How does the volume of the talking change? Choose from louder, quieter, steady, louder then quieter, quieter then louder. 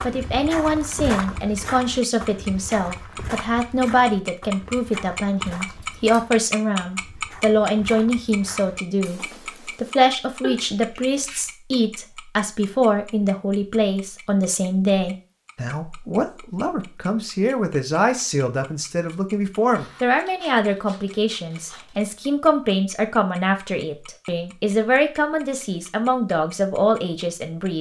steady.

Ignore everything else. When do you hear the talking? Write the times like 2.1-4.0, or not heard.
0.0-27.7.